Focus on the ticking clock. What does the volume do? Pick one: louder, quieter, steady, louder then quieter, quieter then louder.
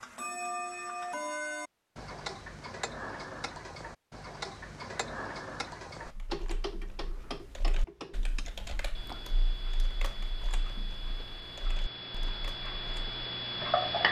quieter then louder.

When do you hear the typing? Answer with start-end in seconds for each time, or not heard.
6.0-13.2.